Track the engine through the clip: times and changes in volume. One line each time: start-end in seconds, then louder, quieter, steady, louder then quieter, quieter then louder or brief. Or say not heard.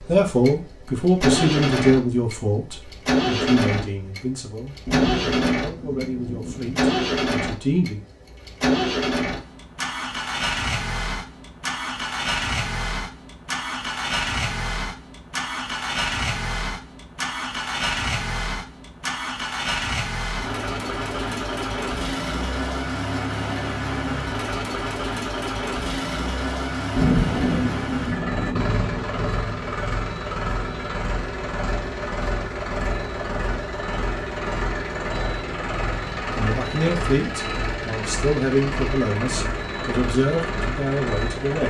0.0-41.6 steady.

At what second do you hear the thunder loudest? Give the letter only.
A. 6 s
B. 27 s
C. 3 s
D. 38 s
B.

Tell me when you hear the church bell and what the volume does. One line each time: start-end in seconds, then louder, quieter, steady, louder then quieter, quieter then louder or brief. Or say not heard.
not heard.